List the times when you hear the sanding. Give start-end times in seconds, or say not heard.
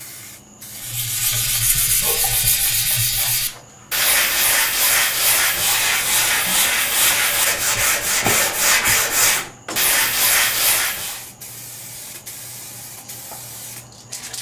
0.7-11.2.